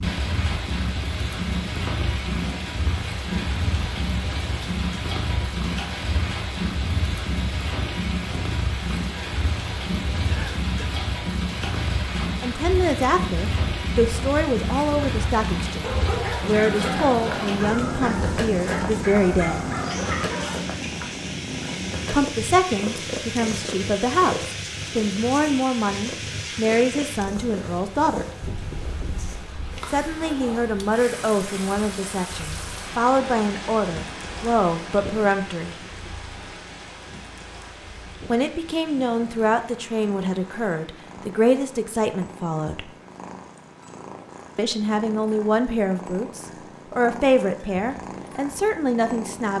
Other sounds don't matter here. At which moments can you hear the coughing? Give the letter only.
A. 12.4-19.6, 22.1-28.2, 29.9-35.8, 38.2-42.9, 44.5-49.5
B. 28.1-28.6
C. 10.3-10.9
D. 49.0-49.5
C.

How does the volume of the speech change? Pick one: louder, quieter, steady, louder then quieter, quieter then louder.
steady.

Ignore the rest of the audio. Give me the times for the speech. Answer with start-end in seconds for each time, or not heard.
12.4-19.6, 22.1-28.2, 29.9-35.8, 38.2-42.9, 44.5-49.5.